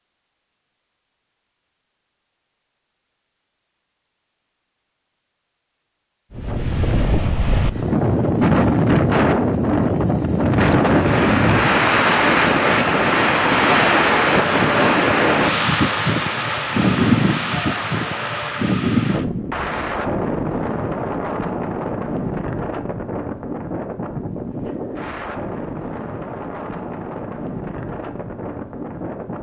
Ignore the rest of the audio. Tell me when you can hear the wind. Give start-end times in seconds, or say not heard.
6.3-29.3.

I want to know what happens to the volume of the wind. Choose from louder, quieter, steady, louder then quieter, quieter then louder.
quieter.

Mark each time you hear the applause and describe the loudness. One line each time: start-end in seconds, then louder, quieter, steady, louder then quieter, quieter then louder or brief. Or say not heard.
10.8-18.8 quieter.